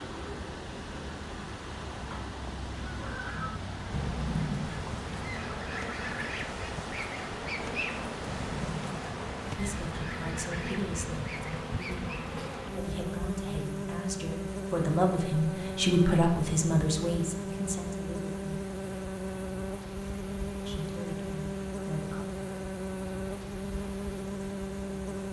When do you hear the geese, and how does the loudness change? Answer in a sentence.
The geese can be heard from 2.8 to 12.1 s, getting quieter.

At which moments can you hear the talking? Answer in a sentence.
You can hear the talking from 9.6 to 18.6 s and from 20.6 to 22.2 s.